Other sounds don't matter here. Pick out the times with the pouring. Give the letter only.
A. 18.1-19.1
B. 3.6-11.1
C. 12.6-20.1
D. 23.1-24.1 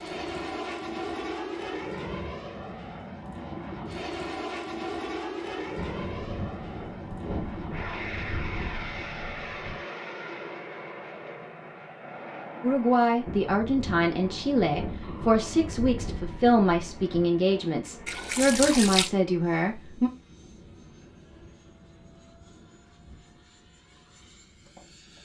A.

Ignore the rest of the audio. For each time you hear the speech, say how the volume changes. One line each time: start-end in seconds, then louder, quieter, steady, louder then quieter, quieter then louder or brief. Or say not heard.
12.6-20.1 steady.